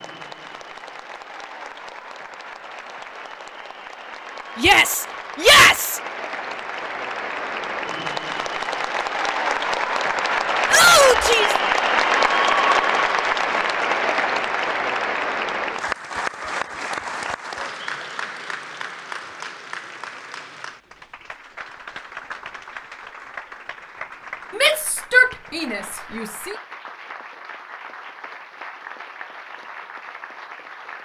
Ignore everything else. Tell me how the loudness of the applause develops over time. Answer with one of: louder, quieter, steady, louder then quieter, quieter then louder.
louder then quieter.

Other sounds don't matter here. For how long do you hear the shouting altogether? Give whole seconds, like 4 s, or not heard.
4 s.